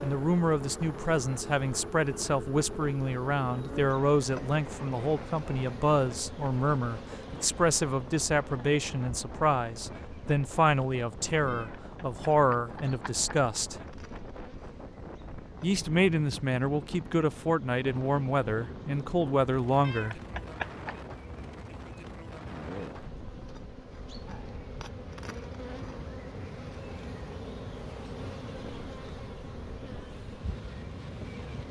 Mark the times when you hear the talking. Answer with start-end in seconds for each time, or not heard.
0.0-13.8, 15.6-20.2.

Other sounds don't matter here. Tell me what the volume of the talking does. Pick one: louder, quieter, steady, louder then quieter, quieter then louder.
steady.